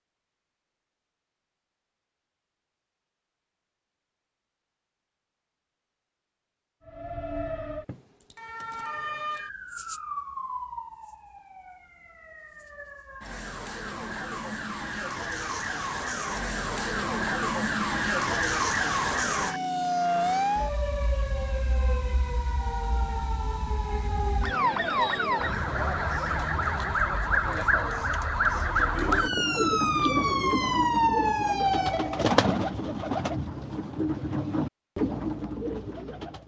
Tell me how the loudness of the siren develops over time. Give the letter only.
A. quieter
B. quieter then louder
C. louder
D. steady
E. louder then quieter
C.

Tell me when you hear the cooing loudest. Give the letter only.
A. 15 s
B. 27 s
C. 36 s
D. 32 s
D.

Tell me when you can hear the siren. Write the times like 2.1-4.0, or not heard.
6.8-32.3.